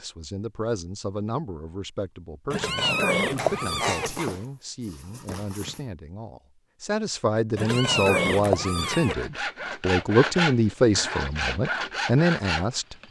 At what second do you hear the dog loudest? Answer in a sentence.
The volume of the dog peaks at 4 seconds.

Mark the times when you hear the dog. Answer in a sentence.
The dog can be heard from 3.4 to 5.8 s.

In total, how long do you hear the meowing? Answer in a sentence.
You can hear the meowing for 3 seconds altogether.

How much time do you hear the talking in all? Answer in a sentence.
You can hear the talking for 13 seconds altogether.